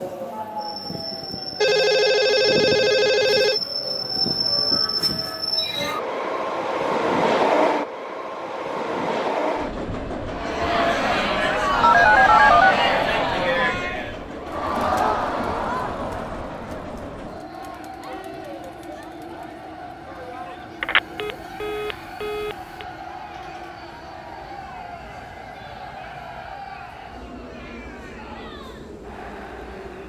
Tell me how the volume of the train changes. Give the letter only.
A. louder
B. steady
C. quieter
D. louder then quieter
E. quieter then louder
C.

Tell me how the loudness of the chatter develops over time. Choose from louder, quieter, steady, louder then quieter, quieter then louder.
quieter.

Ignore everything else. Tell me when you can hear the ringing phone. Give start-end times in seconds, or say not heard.
1.6-3.6, 11.8-12.8, 20.8-22.6.